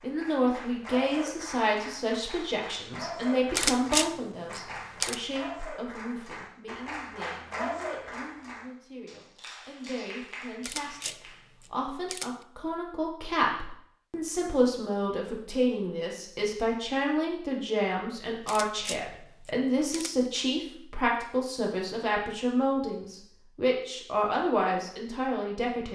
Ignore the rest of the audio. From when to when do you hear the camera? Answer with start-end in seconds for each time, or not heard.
3.5-5.2, 10.6-12.4, 18.4-20.3.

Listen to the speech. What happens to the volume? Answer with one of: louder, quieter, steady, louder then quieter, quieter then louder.
quieter then louder.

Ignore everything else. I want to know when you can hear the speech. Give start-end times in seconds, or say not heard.
0.0-25.9.